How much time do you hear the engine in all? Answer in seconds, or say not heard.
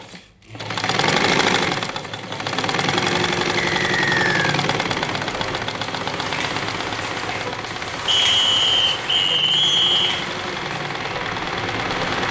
12 s.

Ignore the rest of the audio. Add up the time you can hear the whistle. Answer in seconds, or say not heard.
3 s.